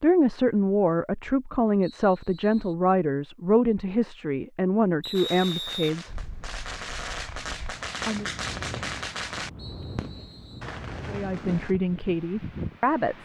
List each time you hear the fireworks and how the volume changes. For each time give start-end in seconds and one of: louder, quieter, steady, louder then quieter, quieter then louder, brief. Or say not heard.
5.2-11.8 louder then quieter.